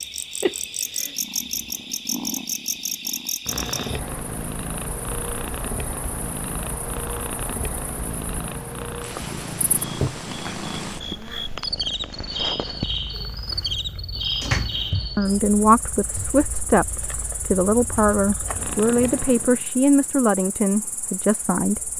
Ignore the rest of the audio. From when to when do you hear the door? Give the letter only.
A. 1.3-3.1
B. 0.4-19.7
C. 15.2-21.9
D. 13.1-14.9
D.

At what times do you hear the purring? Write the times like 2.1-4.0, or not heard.
0.4-19.7.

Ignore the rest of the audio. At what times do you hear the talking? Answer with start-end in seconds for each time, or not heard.
15.2-21.9.